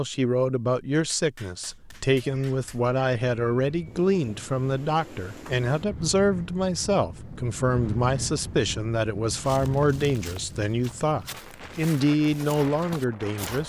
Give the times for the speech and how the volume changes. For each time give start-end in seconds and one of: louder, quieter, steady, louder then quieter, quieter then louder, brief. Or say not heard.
0.0-13.6 steady.